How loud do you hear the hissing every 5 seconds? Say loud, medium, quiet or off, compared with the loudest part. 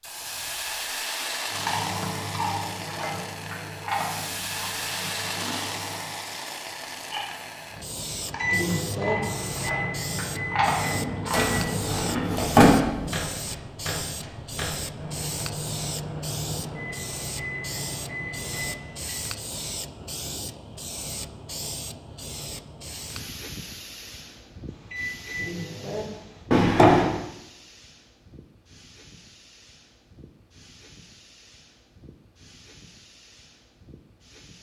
loud, loud, loud, loud, medium, quiet, quiet.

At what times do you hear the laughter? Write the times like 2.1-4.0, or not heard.
not heard.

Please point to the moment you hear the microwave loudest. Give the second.
9 s.